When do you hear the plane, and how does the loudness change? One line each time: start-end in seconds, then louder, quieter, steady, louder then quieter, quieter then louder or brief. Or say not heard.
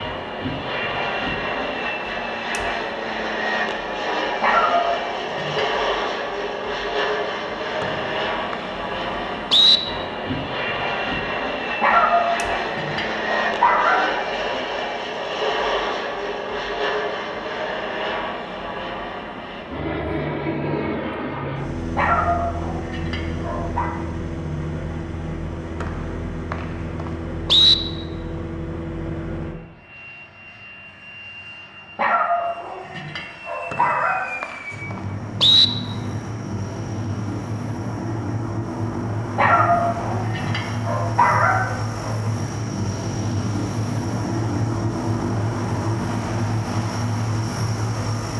0.0-48.3 quieter then louder.